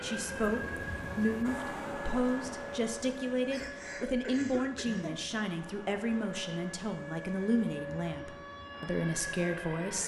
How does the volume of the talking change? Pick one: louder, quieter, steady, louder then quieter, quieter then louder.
steady.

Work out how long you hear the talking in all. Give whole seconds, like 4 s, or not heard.
10 s.